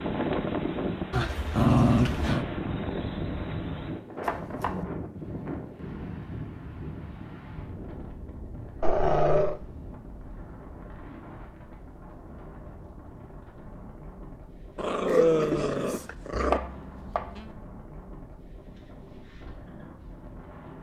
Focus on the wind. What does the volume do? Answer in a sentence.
The volume of the wind goes down.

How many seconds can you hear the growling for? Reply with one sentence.
The growling can be heard for 4 seconds in total.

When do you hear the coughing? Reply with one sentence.
The coughing can't be heard in this clip.